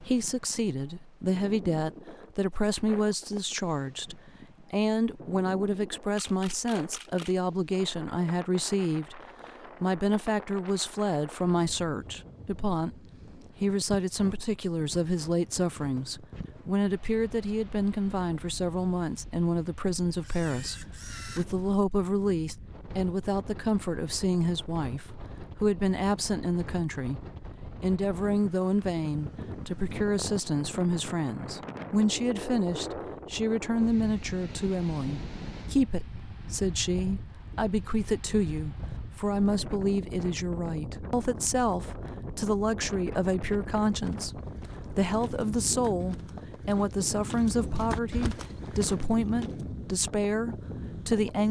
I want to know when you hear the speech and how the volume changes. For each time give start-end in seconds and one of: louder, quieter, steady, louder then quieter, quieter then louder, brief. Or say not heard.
0.0-9.2 steady
9.8-51.4 steady.